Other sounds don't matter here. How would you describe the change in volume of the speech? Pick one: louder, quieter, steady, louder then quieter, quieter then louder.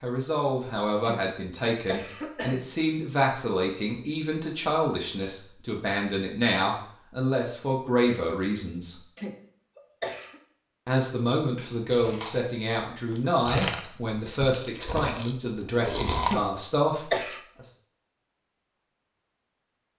steady.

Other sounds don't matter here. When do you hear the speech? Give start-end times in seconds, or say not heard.
0.0-9.0, 10.8-17.7.